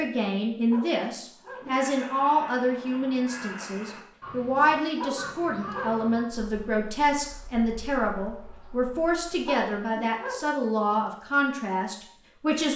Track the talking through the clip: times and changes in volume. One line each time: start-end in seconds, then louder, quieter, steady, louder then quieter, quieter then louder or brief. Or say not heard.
0.0-12.7 steady.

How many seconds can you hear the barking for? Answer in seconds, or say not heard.
3 s.